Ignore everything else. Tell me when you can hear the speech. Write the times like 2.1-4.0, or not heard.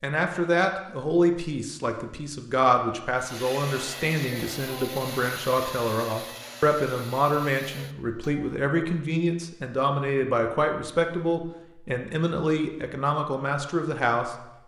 0.0-14.3.